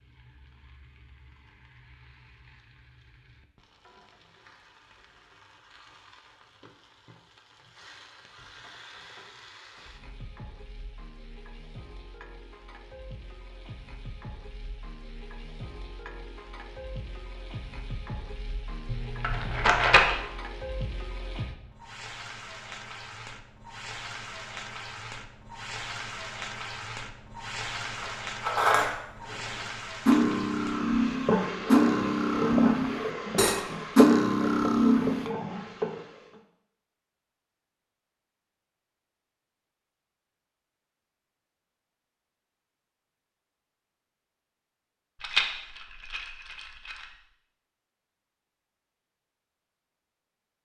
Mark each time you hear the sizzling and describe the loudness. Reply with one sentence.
The sizzling can be heard from 0.0 to 36.4 s, getting louder.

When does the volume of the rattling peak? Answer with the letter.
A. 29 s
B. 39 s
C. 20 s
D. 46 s
C.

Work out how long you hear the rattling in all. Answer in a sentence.
The rattling can be heard for 3 seconds in total.